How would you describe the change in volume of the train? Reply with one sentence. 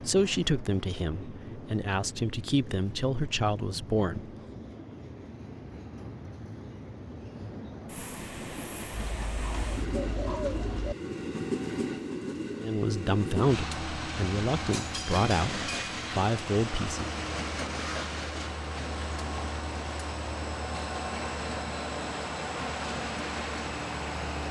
The volume of the train goes up.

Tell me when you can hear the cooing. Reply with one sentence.
The cooing can be heard from 9.2 to 10.9 s.